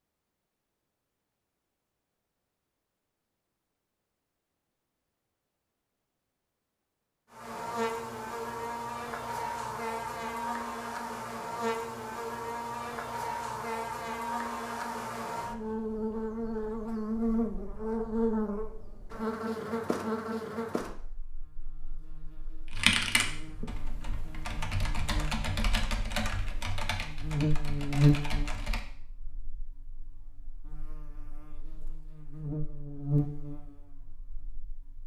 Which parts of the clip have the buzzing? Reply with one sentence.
You can hear the buzzing from 7.3 to 35.0 s.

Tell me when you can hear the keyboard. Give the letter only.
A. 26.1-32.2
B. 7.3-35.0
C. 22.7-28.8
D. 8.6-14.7
C.